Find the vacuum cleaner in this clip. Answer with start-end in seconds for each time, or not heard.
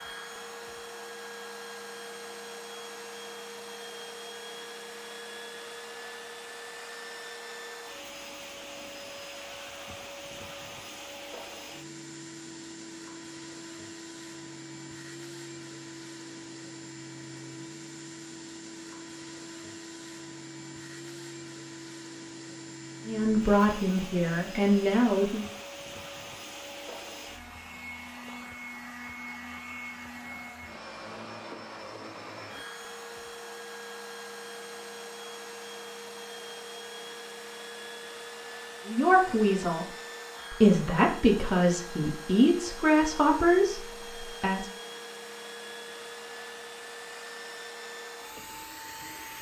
0.0-49.3.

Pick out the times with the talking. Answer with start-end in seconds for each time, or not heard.
23.1-25.4, 38.9-39.9, 40.5-44.7.